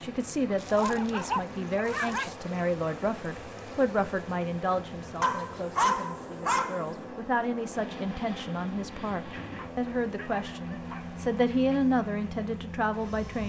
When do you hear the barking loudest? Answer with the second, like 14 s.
6 s.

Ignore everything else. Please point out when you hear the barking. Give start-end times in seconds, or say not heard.
0.6-2.3, 5.2-7.0, 9.3-11.8.